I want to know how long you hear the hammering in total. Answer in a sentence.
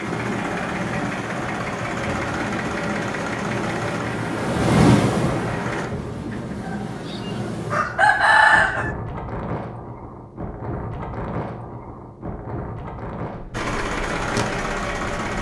You can't hear the hammering here.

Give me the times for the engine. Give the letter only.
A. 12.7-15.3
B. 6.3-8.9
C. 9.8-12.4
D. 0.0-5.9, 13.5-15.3
D.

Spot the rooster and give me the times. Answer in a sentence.
You can hear the rooster from 6.3 to 8.9 s.